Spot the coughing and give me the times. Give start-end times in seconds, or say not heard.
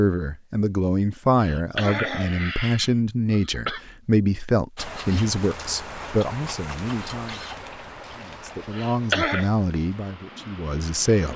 1.4-3.8, 8.7-9.5.